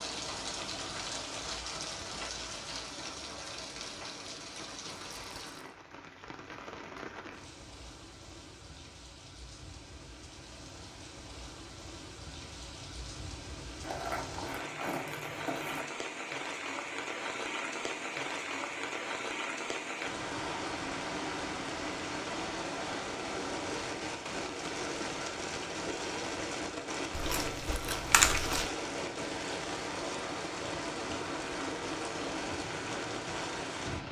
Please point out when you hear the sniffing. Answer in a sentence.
The sniffing can't be heard in this clip.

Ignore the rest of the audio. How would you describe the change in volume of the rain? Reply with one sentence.
The loudness of the rain goes down, then up.